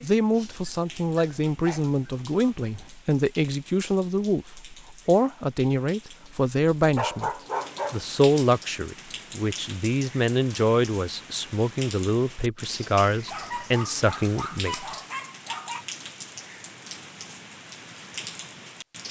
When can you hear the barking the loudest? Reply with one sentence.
The volume of the barking peaks at 7 seconds.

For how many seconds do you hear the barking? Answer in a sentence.
The barking can be heard for 6 seconds in total.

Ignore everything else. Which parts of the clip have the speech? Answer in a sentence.
You can hear the speech from 0.0 to 7.3 s and from 7.9 to 15.0 s.